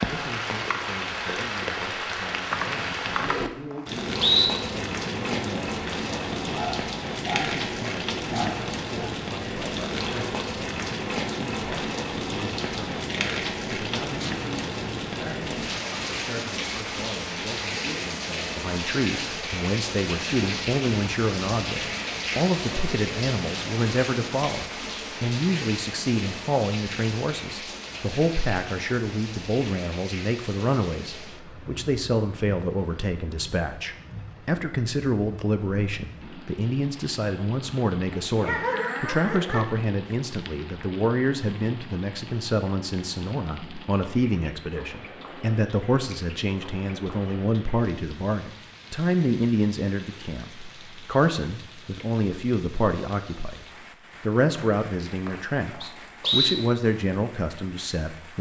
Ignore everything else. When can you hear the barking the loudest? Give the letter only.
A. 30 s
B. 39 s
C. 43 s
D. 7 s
B.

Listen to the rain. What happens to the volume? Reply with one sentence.
The volume of the rain goes down.